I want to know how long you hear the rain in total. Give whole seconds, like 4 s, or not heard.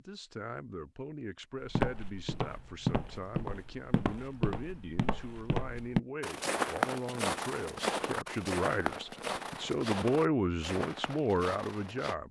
not heard.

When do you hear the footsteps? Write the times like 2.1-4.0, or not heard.
1.6-12.2.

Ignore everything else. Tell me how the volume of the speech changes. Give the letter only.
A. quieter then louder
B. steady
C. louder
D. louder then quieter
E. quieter
C.